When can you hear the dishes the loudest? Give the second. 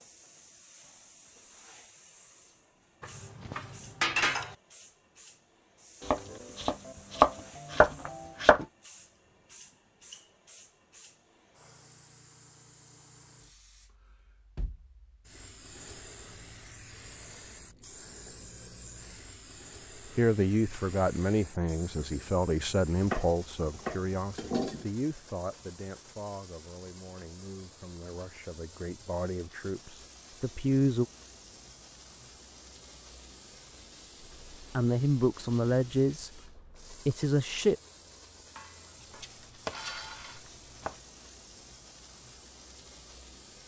4 s.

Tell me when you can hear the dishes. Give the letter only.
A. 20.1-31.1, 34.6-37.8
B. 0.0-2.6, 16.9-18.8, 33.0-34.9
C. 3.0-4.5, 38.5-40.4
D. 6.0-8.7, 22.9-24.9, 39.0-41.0
C.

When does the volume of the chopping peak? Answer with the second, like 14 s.
7 s.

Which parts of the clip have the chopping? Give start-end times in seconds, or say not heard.
6.0-8.7, 22.9-24.9, 39.0-41.0.